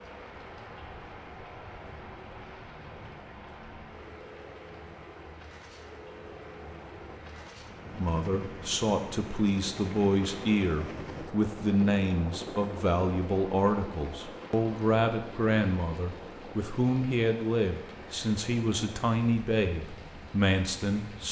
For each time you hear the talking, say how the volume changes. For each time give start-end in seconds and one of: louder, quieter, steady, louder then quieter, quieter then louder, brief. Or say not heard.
7.9-21.2 steady.